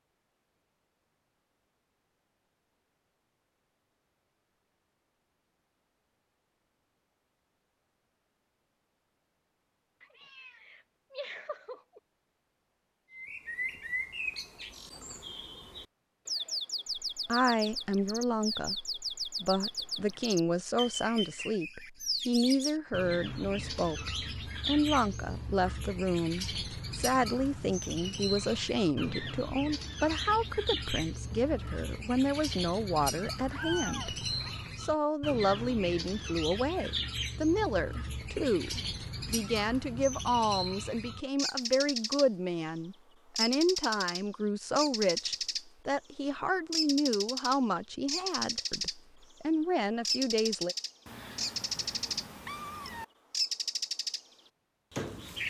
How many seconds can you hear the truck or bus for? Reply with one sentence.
You can't hear the truck or bus here.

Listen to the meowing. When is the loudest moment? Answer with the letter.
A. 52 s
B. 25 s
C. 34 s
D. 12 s
C.